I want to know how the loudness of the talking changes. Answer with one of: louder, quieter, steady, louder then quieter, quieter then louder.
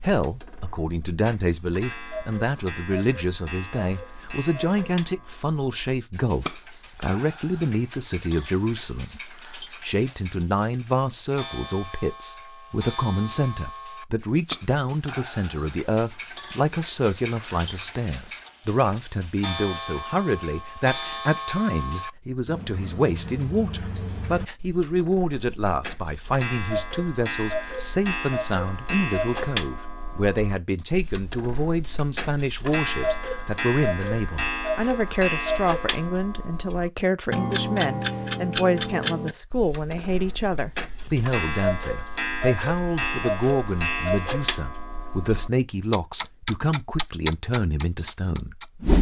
steady.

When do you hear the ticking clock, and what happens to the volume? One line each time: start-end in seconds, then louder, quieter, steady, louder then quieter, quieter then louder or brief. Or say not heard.
0.0-48.9 louder.